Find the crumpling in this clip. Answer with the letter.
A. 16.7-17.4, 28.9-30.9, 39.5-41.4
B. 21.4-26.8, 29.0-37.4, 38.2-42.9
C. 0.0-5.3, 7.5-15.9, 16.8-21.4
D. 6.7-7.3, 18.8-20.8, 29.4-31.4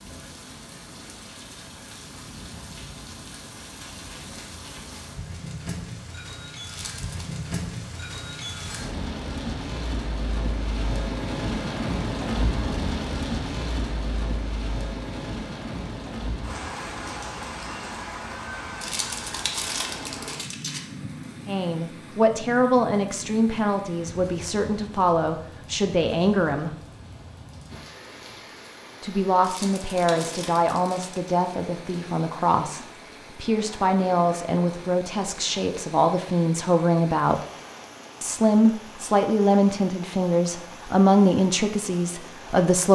D.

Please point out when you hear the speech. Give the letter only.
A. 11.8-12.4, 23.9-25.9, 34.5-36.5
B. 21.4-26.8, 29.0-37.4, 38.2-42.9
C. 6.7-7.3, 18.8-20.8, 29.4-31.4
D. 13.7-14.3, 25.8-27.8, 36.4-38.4
B.